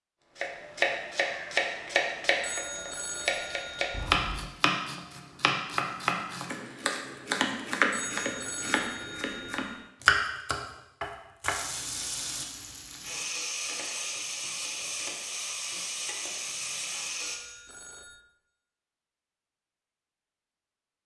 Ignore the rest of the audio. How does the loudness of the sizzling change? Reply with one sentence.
The volume of the sizzling stays about the same.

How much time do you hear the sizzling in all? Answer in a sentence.
The sizzling can be heard for 6 seconds in total.